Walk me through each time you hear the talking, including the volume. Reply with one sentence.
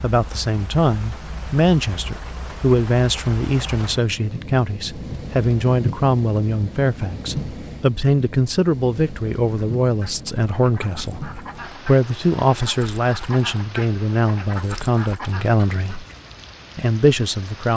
You can hear the talking from 0.0 to 16.1 s, at a steady volume; and briefly from 16.8 to 17.7 s.